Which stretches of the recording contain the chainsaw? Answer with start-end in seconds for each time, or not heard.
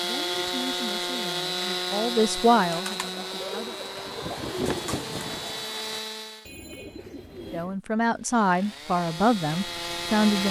0.0-6.5, 8.1-10.4.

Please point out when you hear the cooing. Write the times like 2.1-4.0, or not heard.
0.1-7.7.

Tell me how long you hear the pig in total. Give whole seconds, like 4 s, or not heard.
not heard.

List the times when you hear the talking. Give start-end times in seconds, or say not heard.
0.0-3.8, 7.5-10.4.